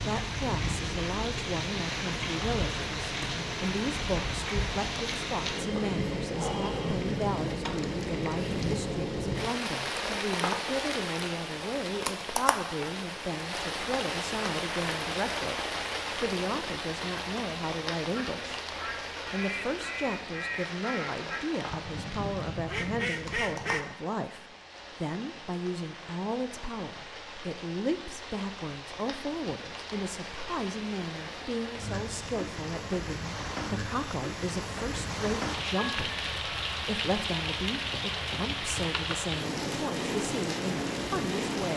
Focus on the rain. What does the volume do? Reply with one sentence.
The volume of the rain goes down, then up.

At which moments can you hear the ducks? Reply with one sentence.
The ducks can be heard from 18.1 to 23.9 s.